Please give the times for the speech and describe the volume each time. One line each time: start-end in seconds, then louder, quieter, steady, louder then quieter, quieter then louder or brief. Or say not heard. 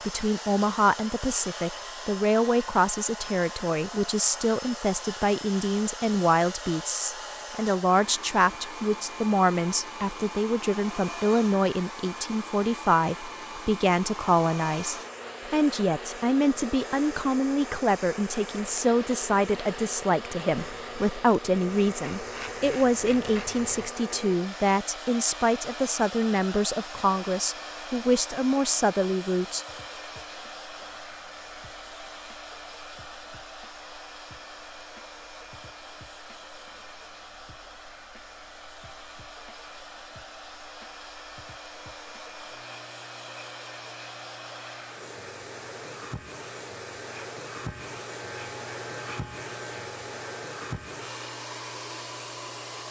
0.1-29.6 steady.